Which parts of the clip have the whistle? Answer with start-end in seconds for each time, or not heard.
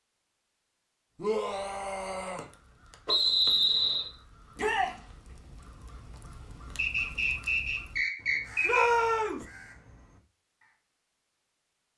3.0-4.1, 6.8-8.8.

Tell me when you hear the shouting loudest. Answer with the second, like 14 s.
9 s.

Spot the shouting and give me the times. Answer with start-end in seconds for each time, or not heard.
1.1-2.5, 4.5-5.0, 8.6-9.4.